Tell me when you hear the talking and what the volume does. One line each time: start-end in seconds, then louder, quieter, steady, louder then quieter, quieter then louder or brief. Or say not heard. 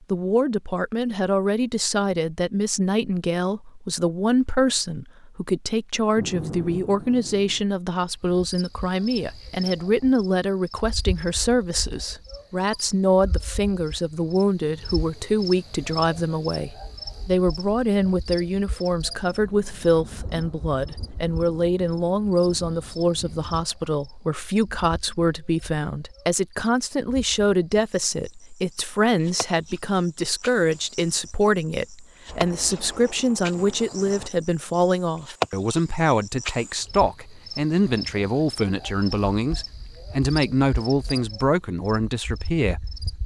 0.1-43.0 steady.